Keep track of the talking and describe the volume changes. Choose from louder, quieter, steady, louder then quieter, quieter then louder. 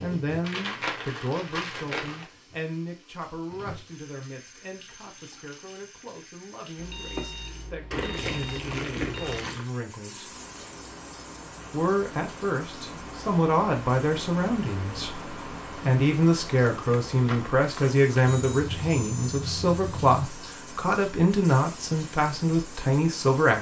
quieter then louder.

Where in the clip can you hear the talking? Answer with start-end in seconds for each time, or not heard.
0.0-10.3, 11.7-23.5.